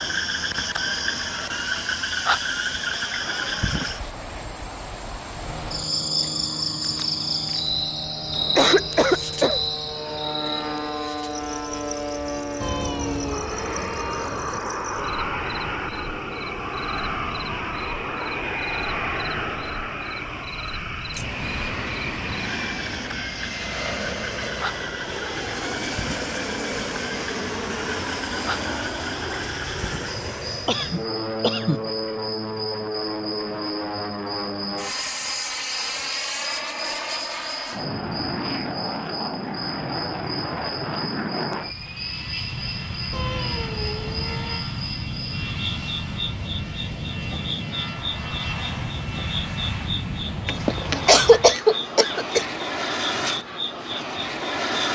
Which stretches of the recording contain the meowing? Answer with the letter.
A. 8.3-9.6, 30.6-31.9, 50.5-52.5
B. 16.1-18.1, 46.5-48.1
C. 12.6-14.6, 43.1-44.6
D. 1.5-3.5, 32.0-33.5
C.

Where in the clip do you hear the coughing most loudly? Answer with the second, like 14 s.
51 s.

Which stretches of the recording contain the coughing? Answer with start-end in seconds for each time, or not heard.
8.3-9.6, 30.6-31.9, 50.5-52.5.